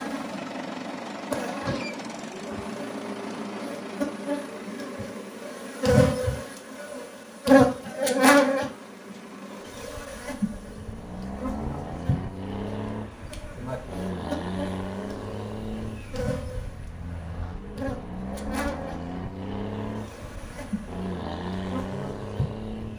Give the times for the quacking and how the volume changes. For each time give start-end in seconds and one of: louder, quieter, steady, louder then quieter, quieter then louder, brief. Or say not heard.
not heard.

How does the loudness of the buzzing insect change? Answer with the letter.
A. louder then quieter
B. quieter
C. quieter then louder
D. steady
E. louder
A.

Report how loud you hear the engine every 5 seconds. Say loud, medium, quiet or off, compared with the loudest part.
loud, medium, loud, loud, loud.